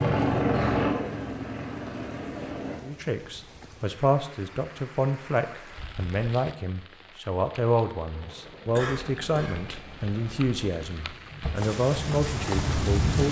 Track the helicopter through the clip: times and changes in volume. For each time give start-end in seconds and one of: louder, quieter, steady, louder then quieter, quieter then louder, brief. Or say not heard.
0.0-2.8 brief
8.1-13.2 louder.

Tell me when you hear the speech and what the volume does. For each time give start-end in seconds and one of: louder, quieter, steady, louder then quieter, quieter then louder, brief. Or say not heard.
2.8-13.2 steady.